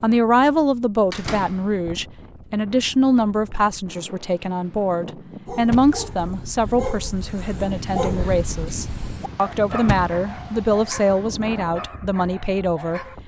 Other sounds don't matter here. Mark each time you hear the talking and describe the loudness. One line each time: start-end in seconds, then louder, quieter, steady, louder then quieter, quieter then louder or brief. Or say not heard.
0.0-13.0 steady.